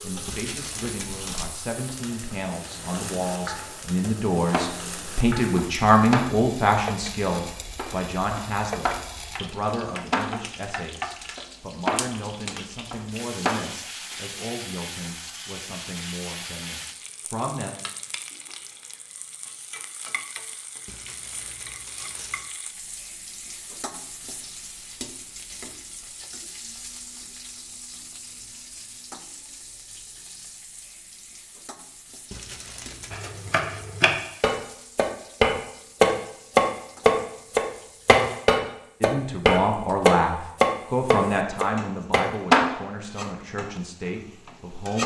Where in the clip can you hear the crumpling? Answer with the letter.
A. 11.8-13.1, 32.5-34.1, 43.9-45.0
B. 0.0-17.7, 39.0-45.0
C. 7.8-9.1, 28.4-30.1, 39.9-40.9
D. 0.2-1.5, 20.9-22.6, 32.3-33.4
D.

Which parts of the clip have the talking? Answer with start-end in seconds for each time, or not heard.
0.0-17.7, 39.0-45.0.